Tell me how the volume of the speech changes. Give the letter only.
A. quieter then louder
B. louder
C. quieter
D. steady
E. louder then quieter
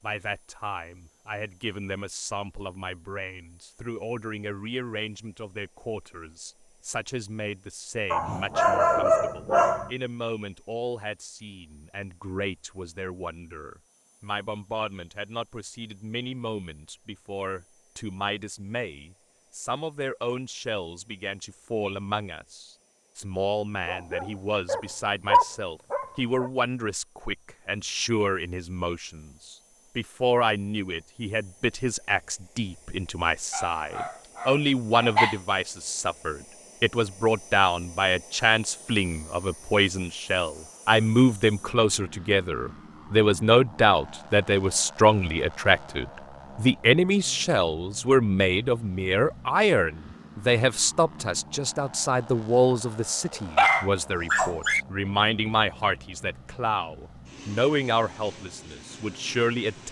B.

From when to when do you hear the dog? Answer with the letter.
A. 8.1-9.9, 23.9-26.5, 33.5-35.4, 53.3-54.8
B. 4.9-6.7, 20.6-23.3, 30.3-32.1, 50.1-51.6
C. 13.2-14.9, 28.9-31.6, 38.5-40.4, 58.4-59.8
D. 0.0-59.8
A.